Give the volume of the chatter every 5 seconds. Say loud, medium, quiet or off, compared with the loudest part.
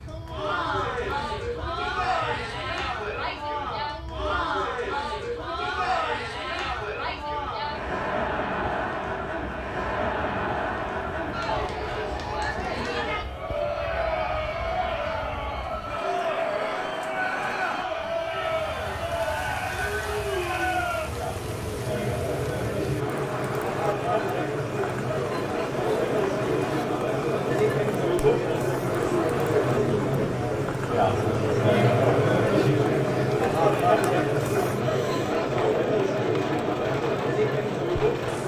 medium, medium, medium, medium, medium, loud, loud, loud.